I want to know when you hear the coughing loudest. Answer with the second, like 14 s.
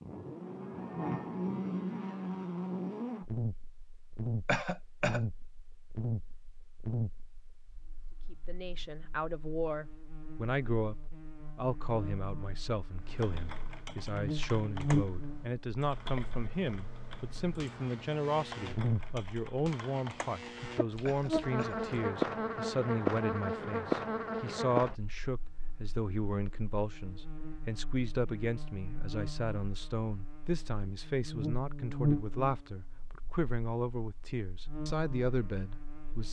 5 s.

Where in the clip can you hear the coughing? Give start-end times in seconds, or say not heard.
4.5-5.2, 21.1-21.8.